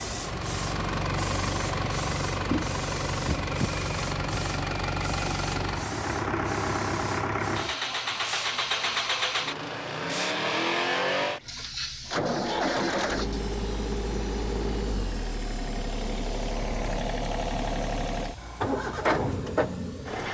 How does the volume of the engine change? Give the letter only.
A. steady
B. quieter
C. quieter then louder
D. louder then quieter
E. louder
A.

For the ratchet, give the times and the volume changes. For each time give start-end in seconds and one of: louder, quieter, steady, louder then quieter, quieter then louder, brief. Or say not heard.
not heard.